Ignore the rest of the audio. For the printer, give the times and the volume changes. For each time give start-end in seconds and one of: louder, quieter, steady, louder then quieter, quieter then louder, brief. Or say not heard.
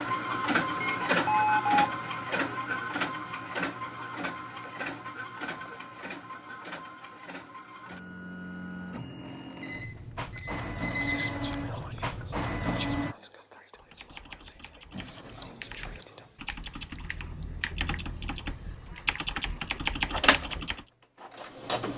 0.0-13.2 quieter then louder
20.1-21.9 brief.